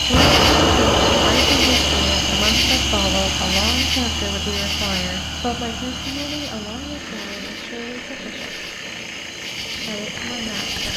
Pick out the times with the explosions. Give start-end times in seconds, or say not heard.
0.1-2.5.